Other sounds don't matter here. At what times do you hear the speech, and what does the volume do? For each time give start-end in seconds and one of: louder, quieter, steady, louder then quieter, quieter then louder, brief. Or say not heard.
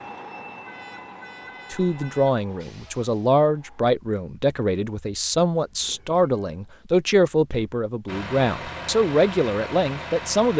1.7-10.5 steady.